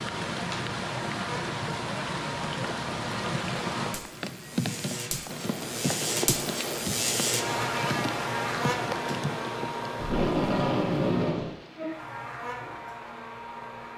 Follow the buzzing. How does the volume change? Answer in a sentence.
The loudness of the buzzing goes up, then down.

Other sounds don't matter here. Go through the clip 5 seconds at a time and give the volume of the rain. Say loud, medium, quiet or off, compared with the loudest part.
loud, loud, quiet.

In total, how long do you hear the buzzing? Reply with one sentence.
You can hear the buzzing for 14 seconds altogether.